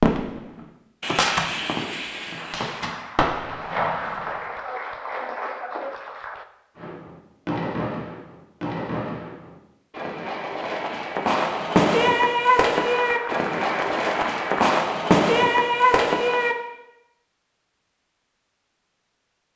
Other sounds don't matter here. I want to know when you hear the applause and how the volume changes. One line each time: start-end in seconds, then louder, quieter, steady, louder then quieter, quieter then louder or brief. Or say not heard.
2.4-6.5 louder
12.8-14.7 brief.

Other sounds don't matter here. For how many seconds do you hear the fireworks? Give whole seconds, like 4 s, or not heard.
14 s.